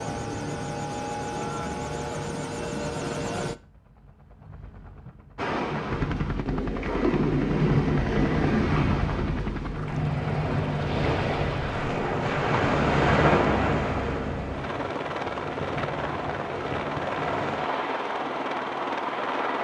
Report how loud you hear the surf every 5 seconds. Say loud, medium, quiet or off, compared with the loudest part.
off, loud, loud, medium.